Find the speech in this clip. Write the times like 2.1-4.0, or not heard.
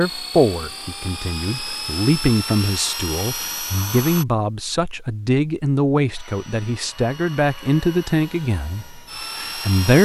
0.0-10.0.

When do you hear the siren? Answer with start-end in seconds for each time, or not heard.
not heard.